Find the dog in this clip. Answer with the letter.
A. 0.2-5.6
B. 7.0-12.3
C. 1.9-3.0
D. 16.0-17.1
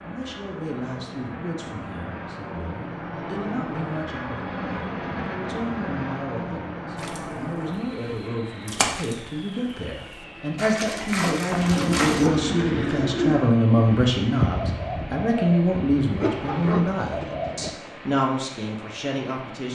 D.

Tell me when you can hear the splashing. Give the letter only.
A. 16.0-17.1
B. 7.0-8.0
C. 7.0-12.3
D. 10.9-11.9
C.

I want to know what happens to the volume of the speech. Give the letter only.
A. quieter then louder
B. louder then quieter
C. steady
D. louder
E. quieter
D.